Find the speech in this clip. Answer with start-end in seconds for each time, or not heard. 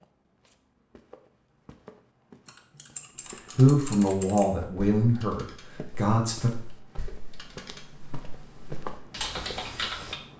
3.5-6.5.